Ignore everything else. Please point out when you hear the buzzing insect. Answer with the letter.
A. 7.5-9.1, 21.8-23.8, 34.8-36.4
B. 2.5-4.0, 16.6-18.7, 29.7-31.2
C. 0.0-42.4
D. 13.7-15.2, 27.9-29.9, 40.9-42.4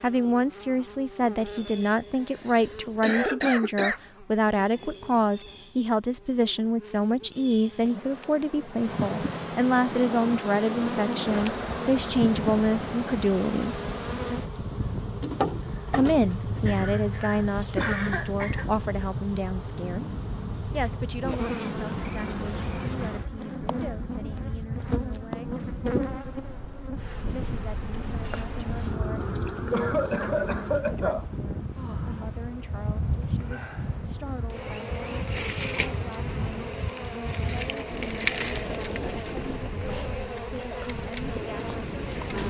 C.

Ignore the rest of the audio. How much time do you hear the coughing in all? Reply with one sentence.
The coughing can be heard for 5 seconds in total.